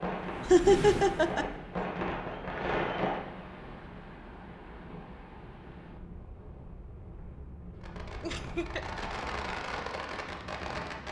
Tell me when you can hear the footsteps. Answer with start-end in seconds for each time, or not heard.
not heard.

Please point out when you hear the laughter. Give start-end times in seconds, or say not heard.
0.5-1.4, 8.2-8.9.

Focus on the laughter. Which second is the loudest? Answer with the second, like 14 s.
1 s.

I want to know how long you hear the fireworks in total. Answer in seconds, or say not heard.
7 s.